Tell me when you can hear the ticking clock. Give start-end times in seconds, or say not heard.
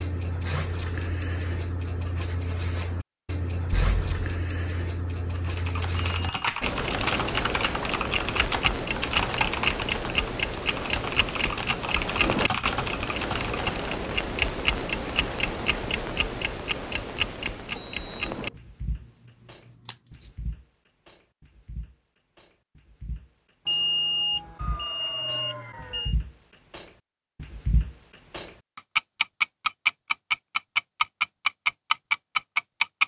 0.0-33.0.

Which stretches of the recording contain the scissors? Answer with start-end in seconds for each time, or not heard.
3.7-4.3.